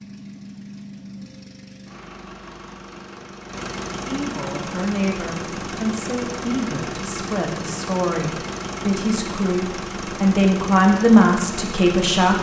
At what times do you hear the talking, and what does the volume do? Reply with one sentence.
The talking can be heard from 4.0 to 12.3 s, getting louder.